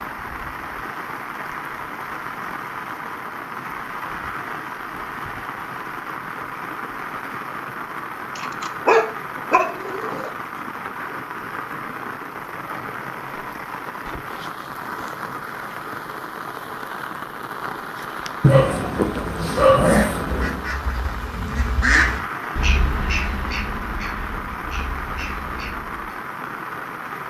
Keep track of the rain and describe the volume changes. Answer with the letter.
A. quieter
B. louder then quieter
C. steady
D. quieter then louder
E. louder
C.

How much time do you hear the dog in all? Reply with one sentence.
You can hear the dog for 4 seconds altogether.